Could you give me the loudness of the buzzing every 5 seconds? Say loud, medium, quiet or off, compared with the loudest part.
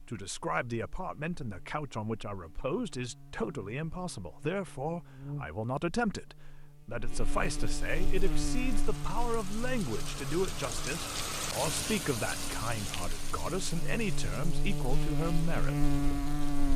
quiet, medium, medium, loud.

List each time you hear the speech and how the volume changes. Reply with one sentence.
You can hear the speech from 0.1 to 15.9 s, at a steady volume.